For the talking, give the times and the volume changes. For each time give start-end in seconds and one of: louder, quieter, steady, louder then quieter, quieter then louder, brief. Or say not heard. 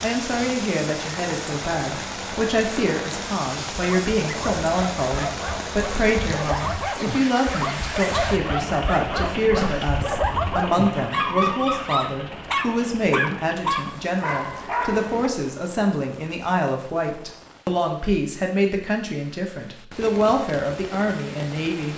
0.0-21.9 steady.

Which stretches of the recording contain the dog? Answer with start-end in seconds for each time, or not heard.
3.8-15.3.